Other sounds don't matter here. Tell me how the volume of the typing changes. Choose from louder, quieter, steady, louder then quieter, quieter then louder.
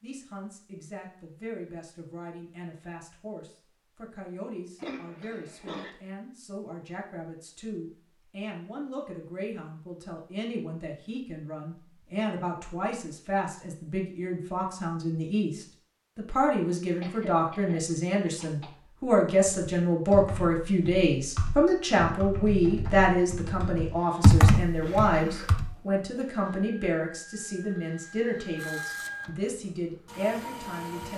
louder.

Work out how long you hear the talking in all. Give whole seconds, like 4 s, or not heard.
31 s.